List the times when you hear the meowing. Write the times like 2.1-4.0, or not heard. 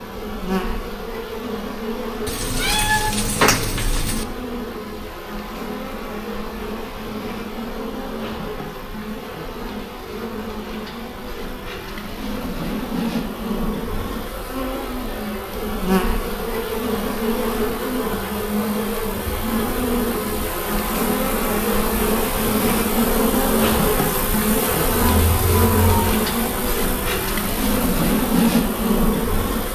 2.2-4.2, 24.9-26.2.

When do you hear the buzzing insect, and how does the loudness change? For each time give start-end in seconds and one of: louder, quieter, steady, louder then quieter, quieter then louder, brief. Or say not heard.
0.0-29.7 louder.